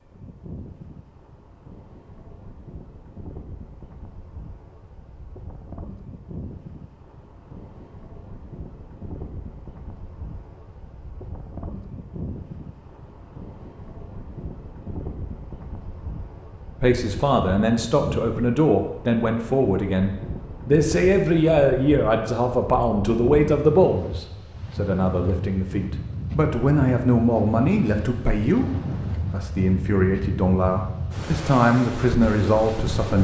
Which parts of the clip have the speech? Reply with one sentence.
You can hear the speech from 16.8 to 28.6 s and from 29.3 to 33.2 s.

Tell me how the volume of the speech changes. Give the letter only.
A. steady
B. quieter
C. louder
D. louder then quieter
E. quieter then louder
A.